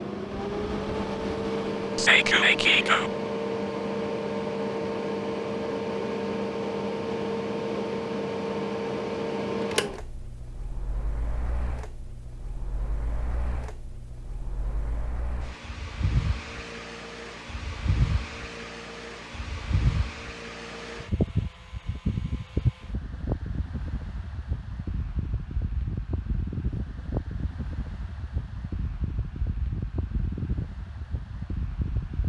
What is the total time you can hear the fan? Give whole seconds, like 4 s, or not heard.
32 s.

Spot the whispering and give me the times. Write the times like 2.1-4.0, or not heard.
1.9-3.1.